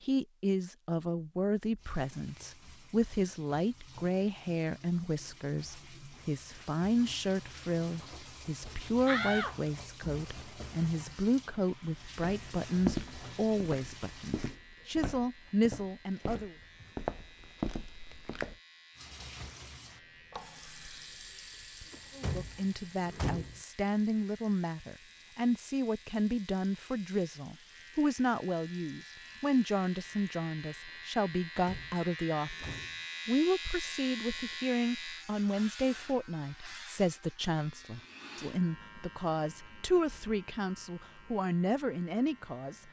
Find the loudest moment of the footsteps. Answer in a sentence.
The volume of the footsteps peaks at 13 seconds.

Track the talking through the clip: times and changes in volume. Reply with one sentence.
The talking can be heard from 0.0 to 16.6 s, at a steady volume; from 22.1 to 32.6 s, at a steady volume; and from 33.2 to 42.8 s, at a steady volume.